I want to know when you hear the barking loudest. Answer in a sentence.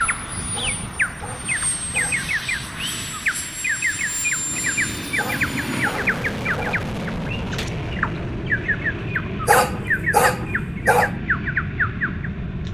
The volume of the barking peaks at 10 seconds.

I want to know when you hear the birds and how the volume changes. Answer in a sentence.
You can hear the birds from 0.0 to 12.6 s, at a steady volume.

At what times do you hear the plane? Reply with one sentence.
The plane can be heard from 0.0 to 12.6 s.